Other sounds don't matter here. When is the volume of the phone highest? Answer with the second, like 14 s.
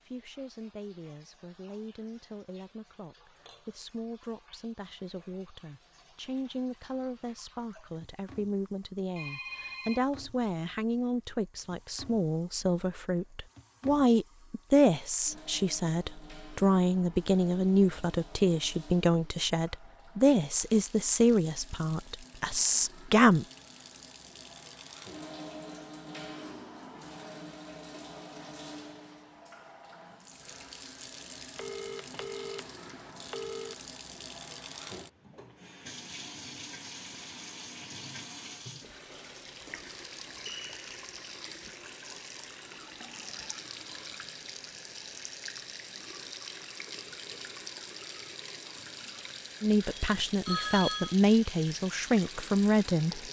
51 s.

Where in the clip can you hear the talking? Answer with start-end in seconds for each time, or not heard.
0.0-23.4, 49.6-53.2.